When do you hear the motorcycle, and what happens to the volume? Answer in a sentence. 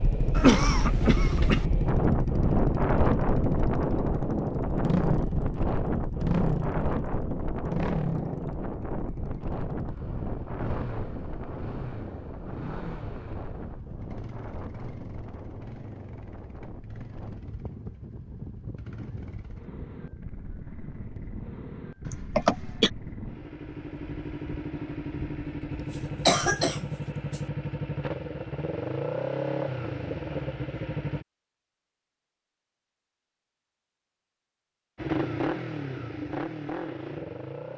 You can hear the motorcycle from 0.0 to 31.2 s, getting quieter then louder; and briefly from 35.0 to 37.7 s.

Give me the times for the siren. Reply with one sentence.
You can't hear the siren here.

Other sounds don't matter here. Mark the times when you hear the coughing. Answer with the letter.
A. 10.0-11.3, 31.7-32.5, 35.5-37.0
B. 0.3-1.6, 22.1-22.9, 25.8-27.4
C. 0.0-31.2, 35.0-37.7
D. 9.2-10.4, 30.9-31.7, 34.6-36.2
B.